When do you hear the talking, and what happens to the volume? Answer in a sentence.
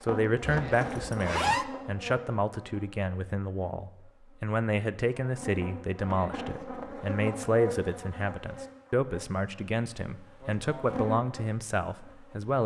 The talking can be heard from 0.0 to 12.6 s, at a steady volume.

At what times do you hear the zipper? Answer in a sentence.
You can hear the zipper from 0.4 to 1.6 s.